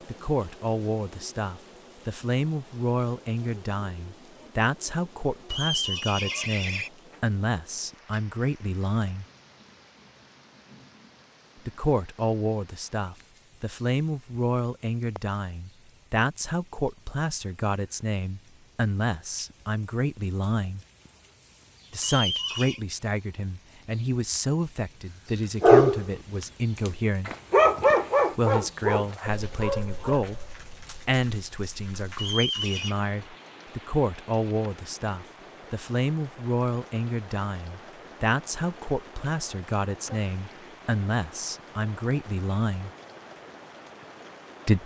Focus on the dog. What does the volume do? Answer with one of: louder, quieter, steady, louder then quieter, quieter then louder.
louder then quieter.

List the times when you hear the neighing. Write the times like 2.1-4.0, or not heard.
5.5-6.9, 22.0-22.8, 32.1-33.0.